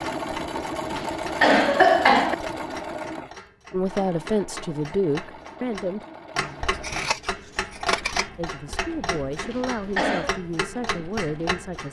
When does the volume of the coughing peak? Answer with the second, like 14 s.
2 s.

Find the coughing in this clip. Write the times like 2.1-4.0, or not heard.
0.9-2.4, 9.4-10.4.